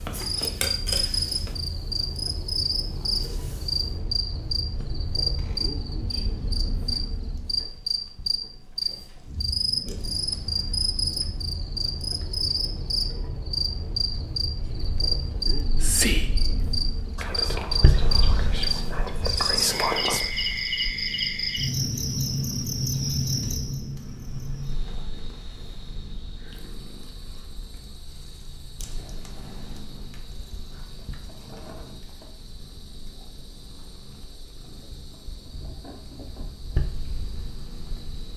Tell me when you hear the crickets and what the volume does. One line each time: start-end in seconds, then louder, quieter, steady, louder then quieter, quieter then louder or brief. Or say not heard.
0.0-38.3 quieter.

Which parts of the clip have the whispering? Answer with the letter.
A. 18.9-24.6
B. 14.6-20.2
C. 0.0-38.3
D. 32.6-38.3
B.